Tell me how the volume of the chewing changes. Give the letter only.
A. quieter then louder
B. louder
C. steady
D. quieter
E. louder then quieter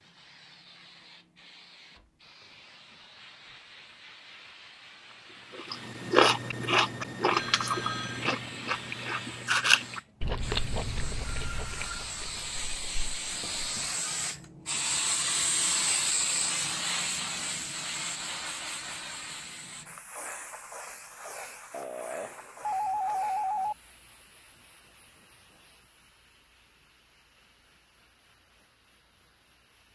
D.